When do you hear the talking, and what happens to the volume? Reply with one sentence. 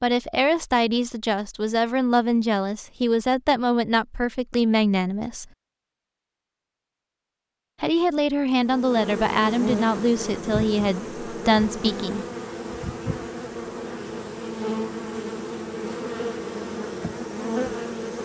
The talking can be heard from 0.0 to 5.5 s, at a steady volume; and from 7.8 to 12.2 s, at a steady volume.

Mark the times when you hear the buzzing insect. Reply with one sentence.
The buzzing insect can be heard from 8.6 to 18.2 s.